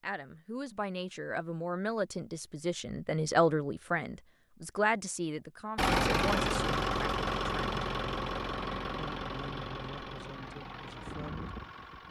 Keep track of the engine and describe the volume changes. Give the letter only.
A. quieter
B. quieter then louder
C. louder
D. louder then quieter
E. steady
A.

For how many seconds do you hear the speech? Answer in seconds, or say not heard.
11 s.